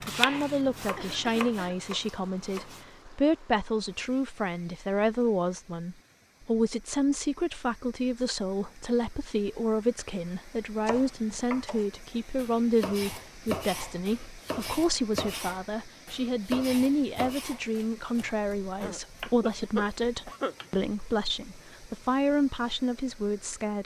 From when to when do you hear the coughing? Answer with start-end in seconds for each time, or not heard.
0.9-1.8, 18.8-20.6.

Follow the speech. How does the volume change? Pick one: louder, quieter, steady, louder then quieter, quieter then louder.
steady.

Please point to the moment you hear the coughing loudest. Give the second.
20 s.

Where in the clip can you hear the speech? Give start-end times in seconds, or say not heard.
0.0-23.8.